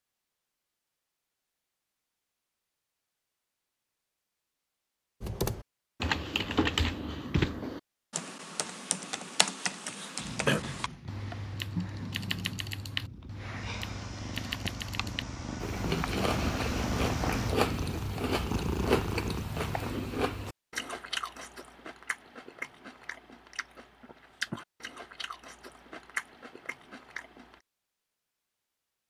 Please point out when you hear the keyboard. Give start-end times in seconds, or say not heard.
5.2-15.2.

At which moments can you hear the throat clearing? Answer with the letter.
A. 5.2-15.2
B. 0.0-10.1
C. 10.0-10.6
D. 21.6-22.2
C.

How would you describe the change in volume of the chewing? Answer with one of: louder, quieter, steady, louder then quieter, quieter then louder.
quieter.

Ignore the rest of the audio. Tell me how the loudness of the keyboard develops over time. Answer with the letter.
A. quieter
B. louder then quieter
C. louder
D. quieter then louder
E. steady
A.